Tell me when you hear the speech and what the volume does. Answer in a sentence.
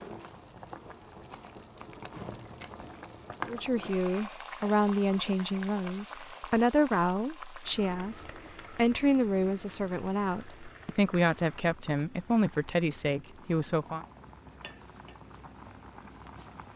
You can hear the speech from 3.5 to 14.0 s, at a steady volume.